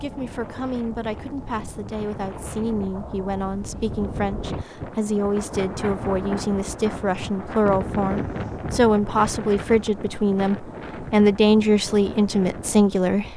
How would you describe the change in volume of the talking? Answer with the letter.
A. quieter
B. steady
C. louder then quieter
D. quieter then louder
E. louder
E.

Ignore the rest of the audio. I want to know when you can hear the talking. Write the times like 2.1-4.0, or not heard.
0.0-13.3.